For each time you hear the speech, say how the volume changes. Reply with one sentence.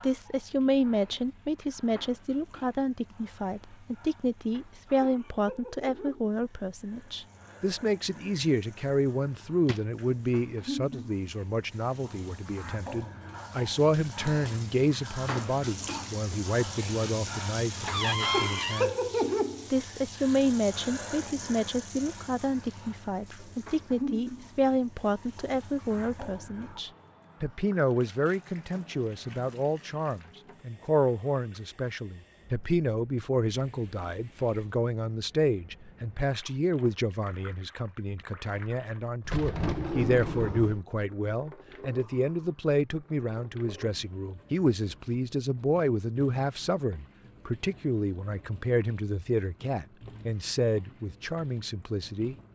You can hear the speech from 0.0 to 52.4 s, at a steady volume.